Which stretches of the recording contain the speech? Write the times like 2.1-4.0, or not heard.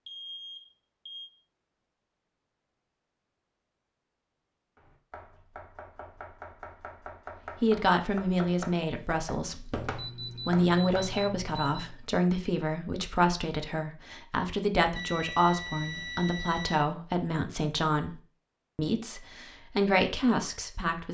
7.6-21.1.